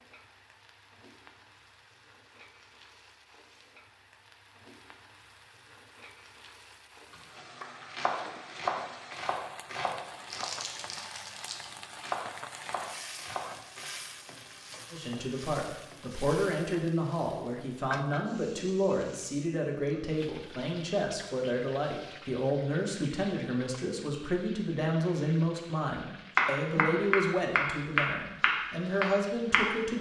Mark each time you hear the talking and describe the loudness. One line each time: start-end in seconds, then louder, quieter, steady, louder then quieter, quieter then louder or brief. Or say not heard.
14.9-29.9 steady.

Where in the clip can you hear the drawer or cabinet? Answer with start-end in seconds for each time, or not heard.
not heard.